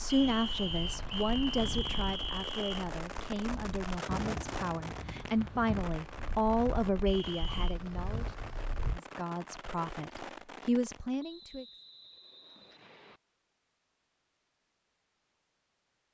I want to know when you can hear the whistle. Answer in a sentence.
You can hear the whistle from 0.1 to 2.9 s, from 7.0 to 7.8 s and from 11.2 to 13.2 s.